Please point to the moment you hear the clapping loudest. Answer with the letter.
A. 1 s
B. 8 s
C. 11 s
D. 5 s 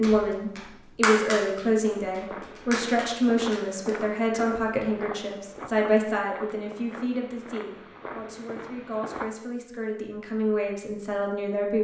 A.